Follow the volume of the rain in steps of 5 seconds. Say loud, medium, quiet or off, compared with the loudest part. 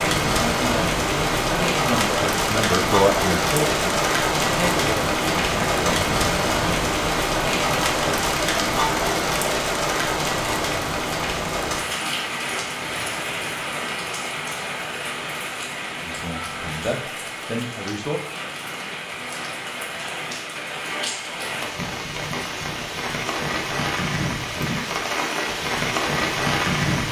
loud, loud, medium, medium, medium, loud.